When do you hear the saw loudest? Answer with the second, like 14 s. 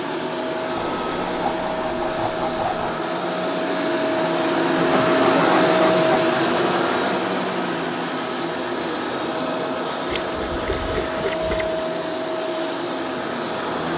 5 s.